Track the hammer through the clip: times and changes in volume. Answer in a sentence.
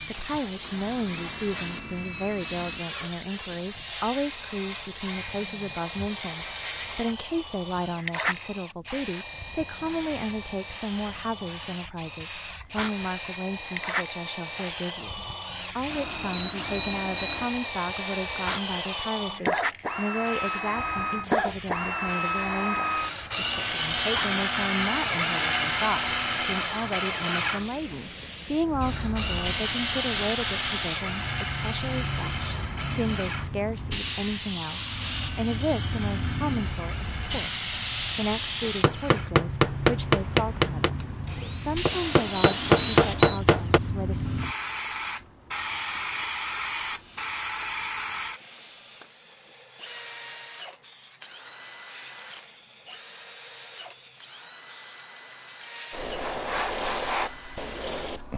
The hammer can be heard from 38.6 to 43.8 s, getting quieter then louder.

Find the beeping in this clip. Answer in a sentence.
The beeping can be heard from 15.9 to 17.5 s and from 41.9 to 43.4 s.